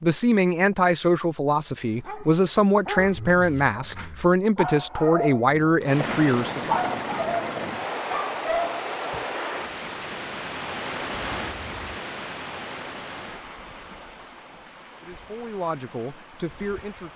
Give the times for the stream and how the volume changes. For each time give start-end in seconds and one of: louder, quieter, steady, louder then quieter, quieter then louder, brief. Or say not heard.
5.8-17.1 quieter.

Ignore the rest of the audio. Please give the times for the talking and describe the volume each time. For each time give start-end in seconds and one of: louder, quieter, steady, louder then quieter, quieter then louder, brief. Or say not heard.
0.0-6.8 steady
15.0-17.1 brief.